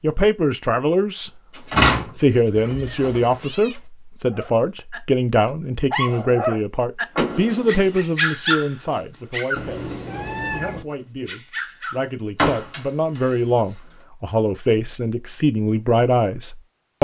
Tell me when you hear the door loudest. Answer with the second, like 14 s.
2 s.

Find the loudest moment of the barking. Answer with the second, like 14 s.
8 s.